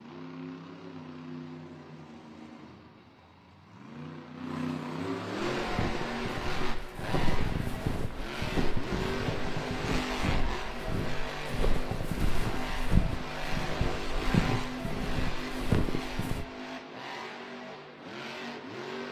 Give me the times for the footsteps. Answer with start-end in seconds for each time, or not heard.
5.5-16.4.